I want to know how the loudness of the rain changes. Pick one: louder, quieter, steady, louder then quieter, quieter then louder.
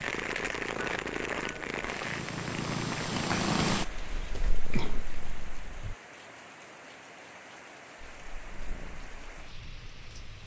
quieter.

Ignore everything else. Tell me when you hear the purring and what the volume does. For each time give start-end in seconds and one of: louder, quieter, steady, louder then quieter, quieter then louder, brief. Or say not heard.
0.0-6.0 louder then quieter
8.0-10.4 brief.